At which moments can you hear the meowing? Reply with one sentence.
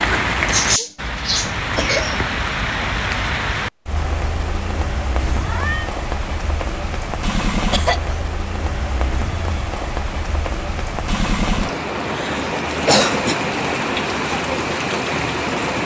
You can hear the meowing from 5.2 to 5.9 s.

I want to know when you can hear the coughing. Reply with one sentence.
You can hear the coughing from 0.5 to 2.2 s, from 7.7 to 8.2 s and from 12.1 to 13.3 s.